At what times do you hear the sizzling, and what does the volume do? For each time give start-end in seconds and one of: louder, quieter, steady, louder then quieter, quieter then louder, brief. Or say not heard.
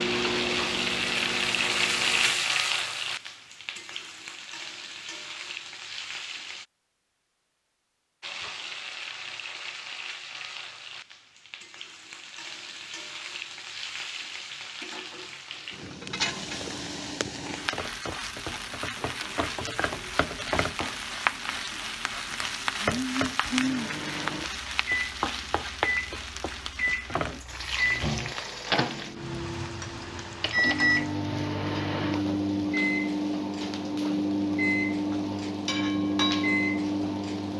0.0-6.7 quieter
8.2-37.5 louder then quieter.